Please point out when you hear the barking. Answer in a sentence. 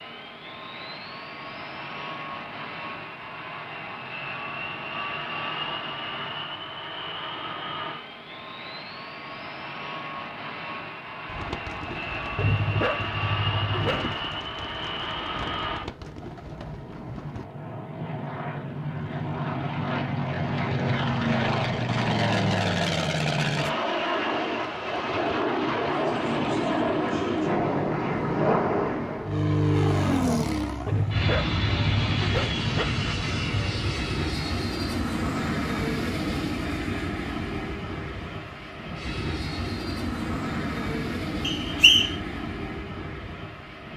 The barking can be heard from 12.3 to 14.2 s and from 30.9 to 32.9 s.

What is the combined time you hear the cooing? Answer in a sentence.
The cooing can be heard for 6 seconds in total.